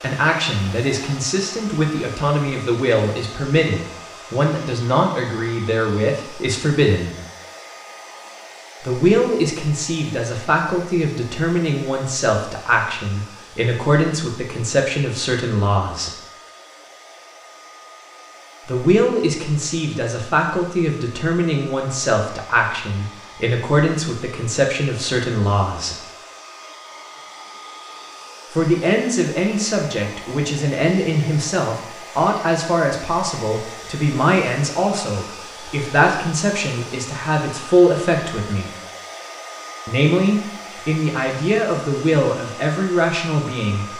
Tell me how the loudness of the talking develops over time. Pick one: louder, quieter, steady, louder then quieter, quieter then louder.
steady.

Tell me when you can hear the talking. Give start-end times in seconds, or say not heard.
0.0-7.2, 8.8-16.1, 18.6-25.9, 28.5-38.7, 39.9-43.9.